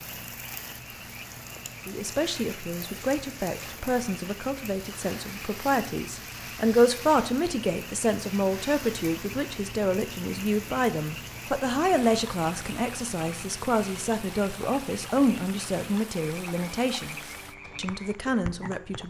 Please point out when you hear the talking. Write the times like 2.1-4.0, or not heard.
1.9-19.0.